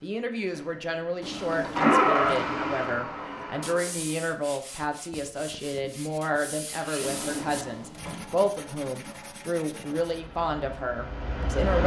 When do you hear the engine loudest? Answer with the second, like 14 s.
2 s.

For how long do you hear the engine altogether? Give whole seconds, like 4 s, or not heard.
5 s.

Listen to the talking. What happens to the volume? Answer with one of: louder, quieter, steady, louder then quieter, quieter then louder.
steady.